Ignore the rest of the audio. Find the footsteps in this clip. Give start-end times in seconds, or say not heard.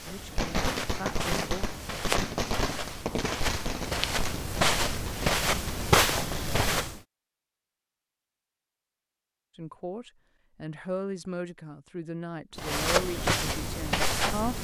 0.0-7.0, 12.6-14.5.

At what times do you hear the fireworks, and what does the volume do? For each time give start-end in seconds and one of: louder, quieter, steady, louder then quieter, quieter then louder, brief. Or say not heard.
0.3-6.6 quieter.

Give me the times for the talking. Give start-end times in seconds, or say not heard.
0.0-1.7, 9.6-14.5.